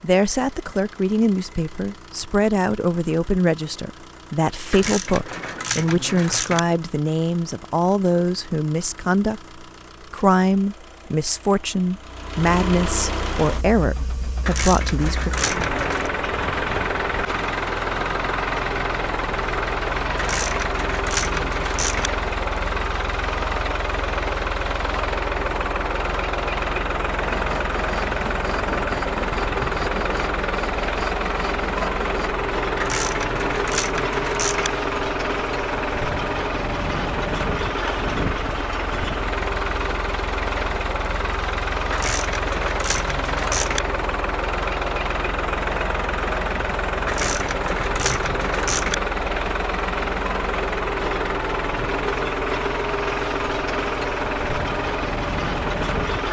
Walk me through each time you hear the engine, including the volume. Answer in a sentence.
The engine can be heard from 0.0 to 56.2 s, getting louder.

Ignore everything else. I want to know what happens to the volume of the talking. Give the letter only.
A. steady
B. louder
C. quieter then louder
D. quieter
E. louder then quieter
A.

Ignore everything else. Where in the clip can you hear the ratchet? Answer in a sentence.
The ratchet can be heard from 4.7 to 6.6 s, from 14.4 to 16.1 s, from 20.1 to 22.1 s, from 32.8 to 34.7 s, from 41.9 to 43.8 s and from 47.0 to 49.0 s.